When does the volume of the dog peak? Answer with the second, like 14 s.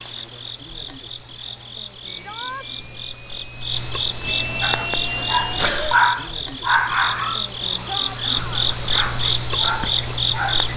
6 s.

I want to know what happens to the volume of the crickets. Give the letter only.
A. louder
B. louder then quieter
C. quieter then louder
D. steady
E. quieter
A.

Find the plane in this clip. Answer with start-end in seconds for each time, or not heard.
2.0-5.7.